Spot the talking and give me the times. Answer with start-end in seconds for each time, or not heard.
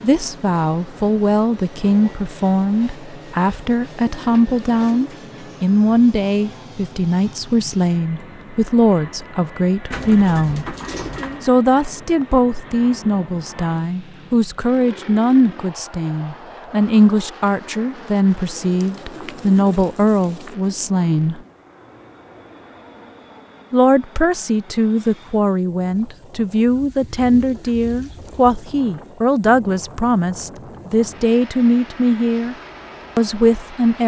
0.0-10.8, 11.4-21.4, 23.7-32.5, 33.1-34.0.